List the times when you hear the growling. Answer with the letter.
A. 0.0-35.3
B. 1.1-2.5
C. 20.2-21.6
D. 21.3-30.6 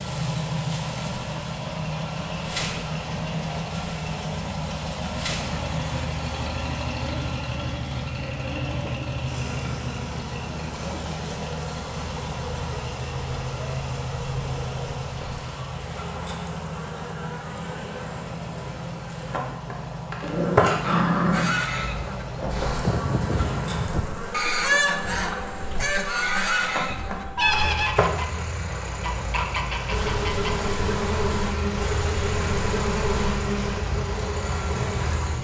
C.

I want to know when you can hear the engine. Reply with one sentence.
You can hear the engine from 0.0 to 35.3 s.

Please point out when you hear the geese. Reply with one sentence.
The geese can be heard from 21.3 to 30.6 s.